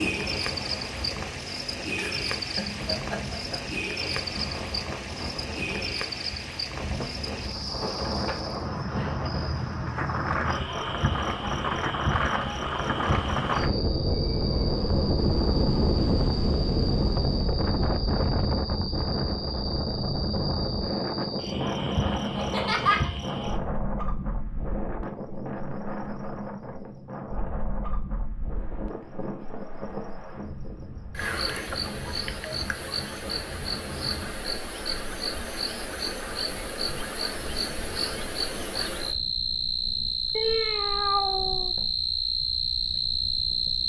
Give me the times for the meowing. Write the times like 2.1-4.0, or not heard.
40.3-41.8.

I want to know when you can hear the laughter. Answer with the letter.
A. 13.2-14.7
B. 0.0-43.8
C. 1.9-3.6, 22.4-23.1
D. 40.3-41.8
C.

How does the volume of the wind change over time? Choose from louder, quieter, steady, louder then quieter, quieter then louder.
louder then quieter.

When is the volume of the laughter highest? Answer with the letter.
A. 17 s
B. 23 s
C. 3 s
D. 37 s
B.